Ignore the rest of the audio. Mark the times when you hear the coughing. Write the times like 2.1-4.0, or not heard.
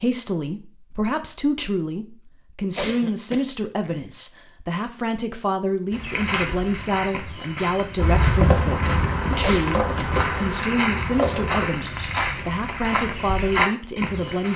2.6-4.1, 9.3-10.1.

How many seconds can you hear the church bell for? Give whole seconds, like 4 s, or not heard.
not heard.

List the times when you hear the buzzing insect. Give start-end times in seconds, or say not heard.
8.0-11.7.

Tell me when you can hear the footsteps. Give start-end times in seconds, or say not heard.
5.9-14.5.